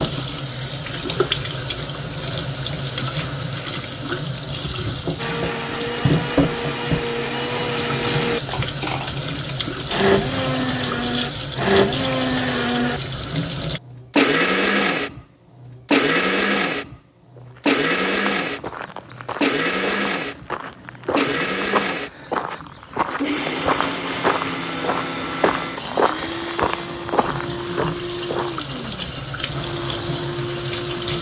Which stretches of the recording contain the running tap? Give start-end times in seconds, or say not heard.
0.0-13.8, 27.2-31.1.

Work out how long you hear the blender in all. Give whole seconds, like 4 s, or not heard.
25 s.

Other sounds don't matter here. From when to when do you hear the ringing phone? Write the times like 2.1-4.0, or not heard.
not heard.